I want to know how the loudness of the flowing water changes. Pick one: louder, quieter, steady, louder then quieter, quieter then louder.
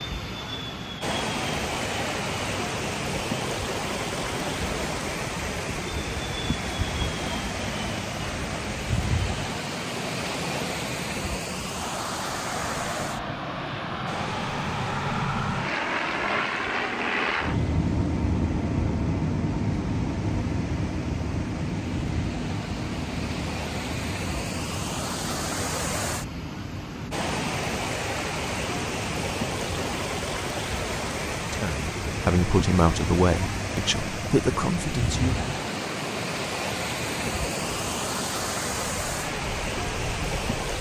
quieter then louder.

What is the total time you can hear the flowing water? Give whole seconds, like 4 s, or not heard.
41 s.